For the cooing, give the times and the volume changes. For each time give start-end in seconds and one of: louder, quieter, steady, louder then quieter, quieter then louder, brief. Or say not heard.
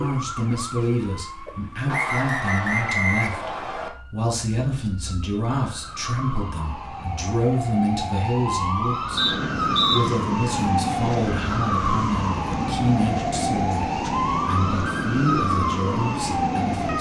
not heard.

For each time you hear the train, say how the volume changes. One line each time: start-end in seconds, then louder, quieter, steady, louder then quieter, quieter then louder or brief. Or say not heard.
9.1-16.9 steady.